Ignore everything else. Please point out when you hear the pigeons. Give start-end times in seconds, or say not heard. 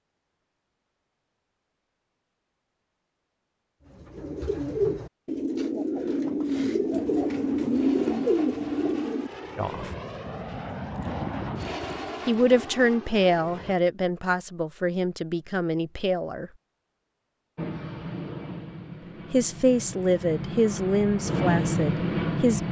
3.9-9.3.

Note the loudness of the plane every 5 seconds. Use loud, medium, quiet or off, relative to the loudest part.
off, quiet, medium, medium, loud.